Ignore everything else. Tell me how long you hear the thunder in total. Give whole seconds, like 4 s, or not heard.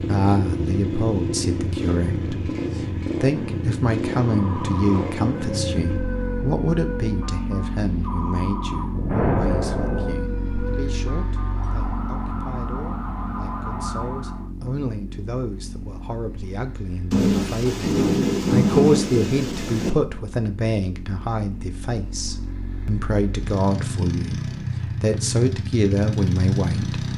4 s.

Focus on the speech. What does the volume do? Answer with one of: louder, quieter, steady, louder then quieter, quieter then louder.
quieter then louder.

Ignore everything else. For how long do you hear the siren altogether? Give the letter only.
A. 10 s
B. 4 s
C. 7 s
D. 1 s
A.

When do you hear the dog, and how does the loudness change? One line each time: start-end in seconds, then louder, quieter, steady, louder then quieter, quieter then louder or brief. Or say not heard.
not heard.